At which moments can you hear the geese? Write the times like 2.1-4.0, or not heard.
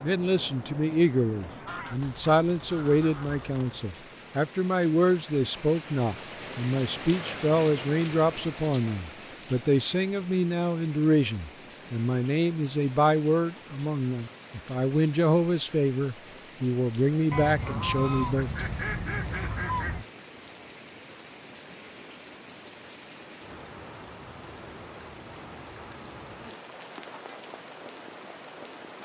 1.4-3.5, 17.3-20.1.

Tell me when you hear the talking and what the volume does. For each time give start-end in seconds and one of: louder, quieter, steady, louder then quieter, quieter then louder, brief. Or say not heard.
0.0-18.5 steady.